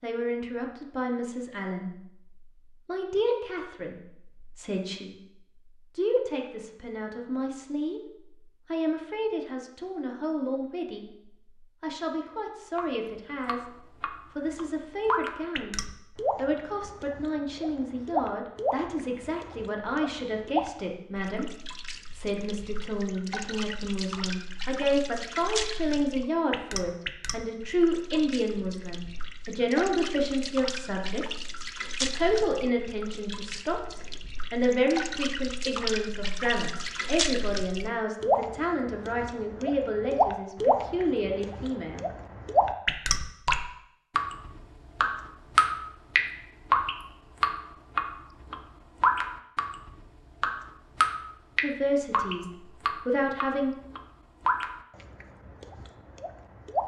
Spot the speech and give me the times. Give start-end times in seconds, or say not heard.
0.0-42.0, 51.6-53.8.